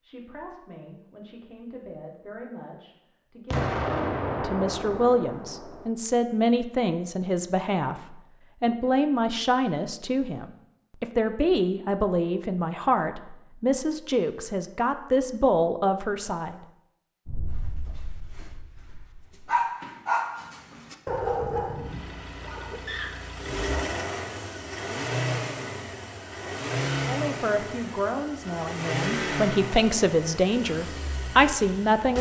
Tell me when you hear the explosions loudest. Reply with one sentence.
The volume of the explosions peaks at 4 seconds.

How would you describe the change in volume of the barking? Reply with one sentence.
The volume of the barking goes up, then down.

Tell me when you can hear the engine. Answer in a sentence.
The engine can be heard from 21.7 to 32.1 s.